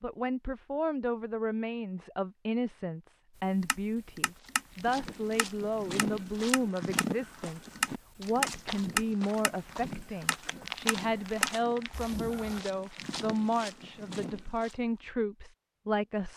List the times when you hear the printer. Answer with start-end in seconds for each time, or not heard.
not heard.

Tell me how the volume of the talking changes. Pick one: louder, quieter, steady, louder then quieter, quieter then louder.
steady.